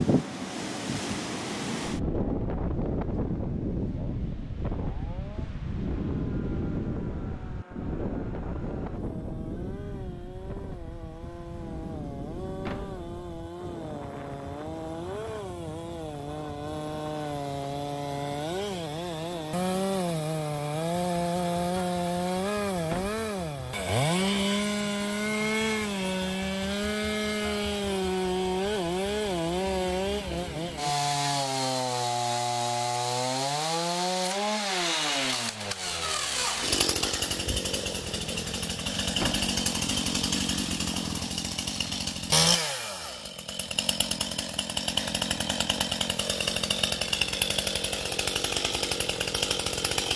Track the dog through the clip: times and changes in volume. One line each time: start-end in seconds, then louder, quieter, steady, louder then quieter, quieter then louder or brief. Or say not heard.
not heard.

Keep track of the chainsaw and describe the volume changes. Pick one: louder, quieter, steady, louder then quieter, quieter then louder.
louder.